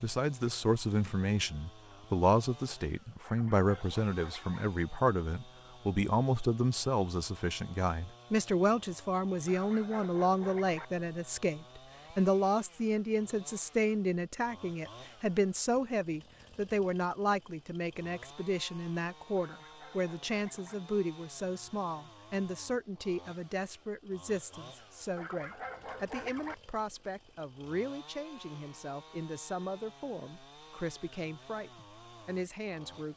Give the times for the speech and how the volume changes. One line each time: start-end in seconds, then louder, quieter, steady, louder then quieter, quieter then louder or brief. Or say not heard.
0.0-33.1 quieter.